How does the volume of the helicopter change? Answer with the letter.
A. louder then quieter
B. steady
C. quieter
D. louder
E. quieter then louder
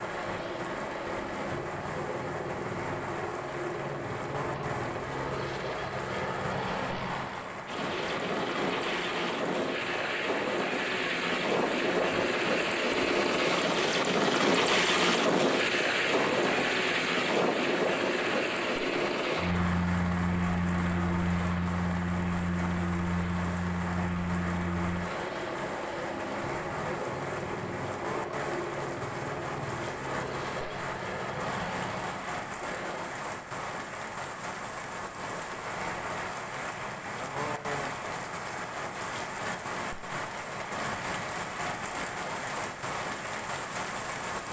A.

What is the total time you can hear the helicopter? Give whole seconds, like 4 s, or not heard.
33 s.